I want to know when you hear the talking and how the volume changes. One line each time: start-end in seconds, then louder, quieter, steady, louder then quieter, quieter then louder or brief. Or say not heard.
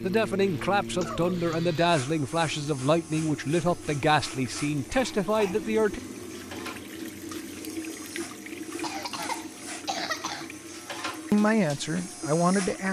0.0-6.0 steady
11.3-12.8 brief.